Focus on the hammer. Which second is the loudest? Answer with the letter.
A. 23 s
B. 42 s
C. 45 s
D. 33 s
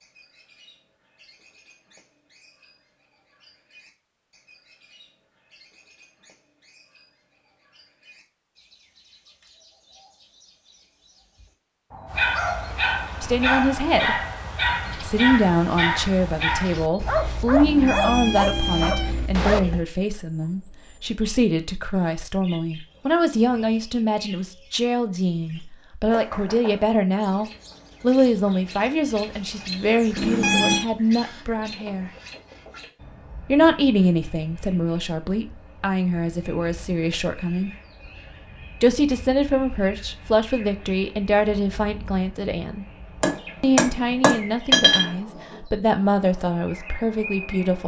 C.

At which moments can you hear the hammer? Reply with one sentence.
You can hear the hammer from 43.2 to 45.6 s.